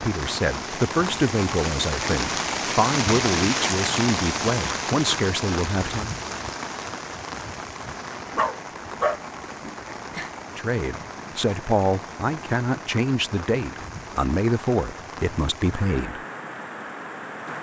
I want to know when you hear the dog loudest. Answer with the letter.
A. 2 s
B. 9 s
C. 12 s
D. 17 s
B.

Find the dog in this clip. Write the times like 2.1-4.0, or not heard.
8.3-10.3.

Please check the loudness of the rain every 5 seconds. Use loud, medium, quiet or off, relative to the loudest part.
loud, medium, medium, medium.